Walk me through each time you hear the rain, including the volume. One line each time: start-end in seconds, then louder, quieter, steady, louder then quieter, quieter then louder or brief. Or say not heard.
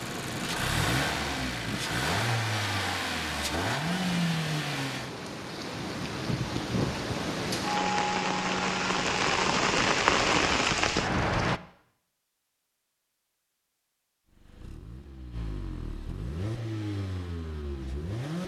0.0-11.6 louder.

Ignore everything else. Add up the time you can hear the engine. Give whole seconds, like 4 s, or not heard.
9 s.